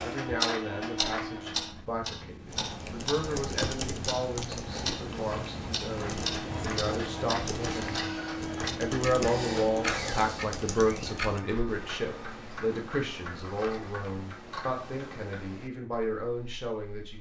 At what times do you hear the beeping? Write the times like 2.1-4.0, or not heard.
not heard.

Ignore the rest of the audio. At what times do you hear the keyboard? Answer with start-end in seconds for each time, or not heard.
2.5-11.4.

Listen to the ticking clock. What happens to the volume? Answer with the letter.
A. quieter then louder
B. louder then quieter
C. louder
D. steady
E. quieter
E.